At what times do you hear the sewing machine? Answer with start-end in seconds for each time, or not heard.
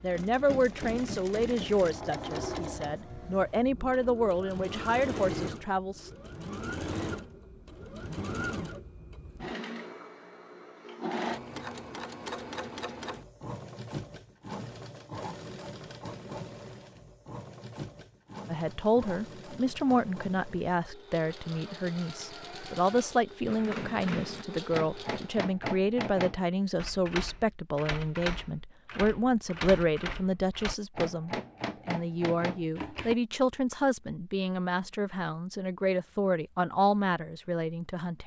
0.0-25.4.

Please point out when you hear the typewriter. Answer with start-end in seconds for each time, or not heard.
23.4-33.1.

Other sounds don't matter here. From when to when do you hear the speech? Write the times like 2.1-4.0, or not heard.
0.0-6.1, 18.5-38.2.